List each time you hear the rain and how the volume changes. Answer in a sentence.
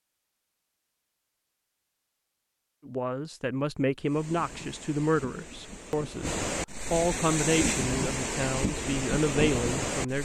The rain can be heard from 4.0 to 10.1 s, getting louder.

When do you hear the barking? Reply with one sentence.
The barking can't be heard in this clip.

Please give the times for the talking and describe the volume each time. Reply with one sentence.
The talking can be heard from 2.9 to 10.1 s, at a steady volume.